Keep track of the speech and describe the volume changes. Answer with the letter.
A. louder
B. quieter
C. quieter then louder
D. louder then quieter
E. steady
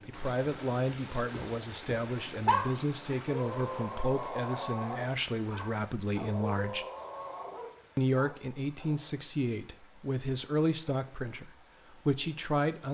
E.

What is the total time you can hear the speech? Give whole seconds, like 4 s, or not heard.
12 s.